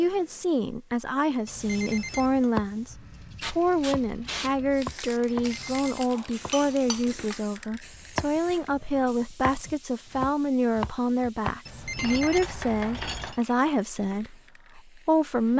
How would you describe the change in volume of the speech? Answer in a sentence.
The volume of the speech stays about the same.